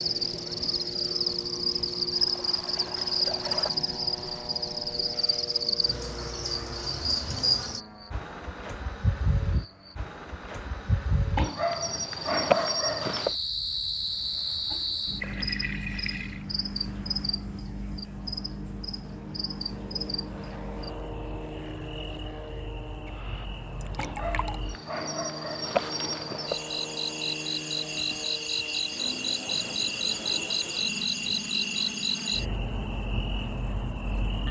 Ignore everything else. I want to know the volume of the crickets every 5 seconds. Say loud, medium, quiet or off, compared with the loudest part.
loud, loud, loud, medium, quiet, loud, loud.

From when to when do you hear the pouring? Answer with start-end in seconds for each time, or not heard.
1.9-3.7, 15.2-16.4, 23.8-24.6.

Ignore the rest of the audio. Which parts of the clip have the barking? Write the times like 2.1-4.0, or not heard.
11.3-13.3, 23.9-26.3.